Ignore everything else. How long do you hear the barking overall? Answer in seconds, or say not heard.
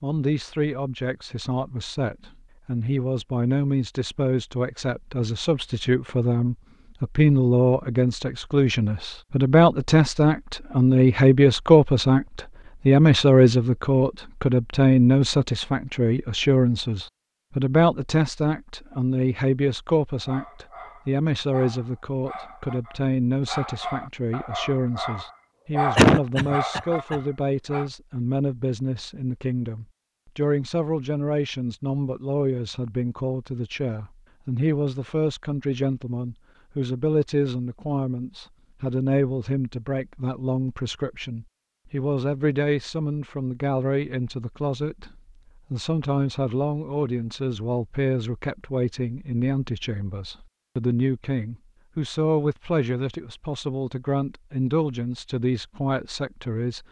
8 s.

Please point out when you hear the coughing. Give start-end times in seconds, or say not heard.
25.9-27.2.